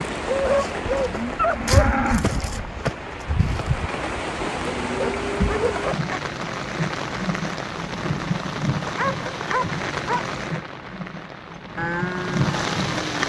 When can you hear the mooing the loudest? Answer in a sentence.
The loudest moment of the mooing is at 2 seconds.